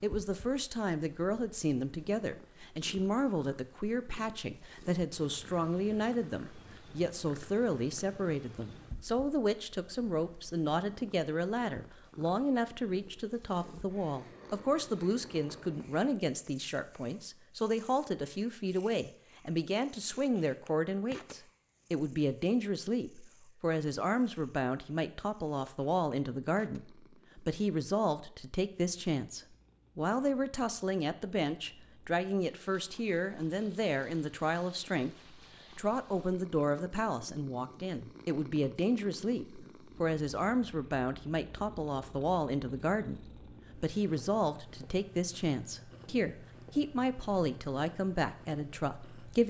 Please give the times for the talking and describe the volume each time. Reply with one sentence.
You can hear the talking from 0.0 to 49.4 s, at a steady volume.